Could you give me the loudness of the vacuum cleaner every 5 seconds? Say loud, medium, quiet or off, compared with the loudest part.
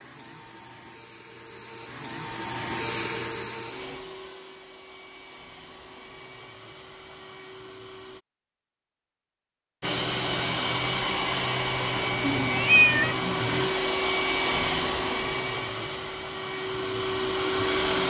medium, quiet, loud, loud.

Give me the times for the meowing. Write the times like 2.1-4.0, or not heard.
12.2-13.2.